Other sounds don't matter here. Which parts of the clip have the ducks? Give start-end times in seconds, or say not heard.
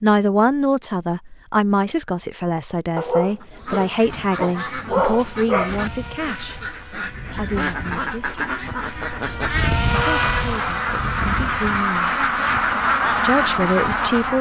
3.2-14.3.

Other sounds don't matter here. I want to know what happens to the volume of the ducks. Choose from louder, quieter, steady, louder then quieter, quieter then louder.
louder.